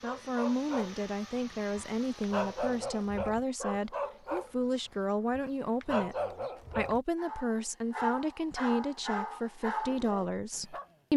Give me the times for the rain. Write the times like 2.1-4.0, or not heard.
not heard.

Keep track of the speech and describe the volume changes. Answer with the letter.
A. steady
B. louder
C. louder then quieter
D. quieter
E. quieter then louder
A.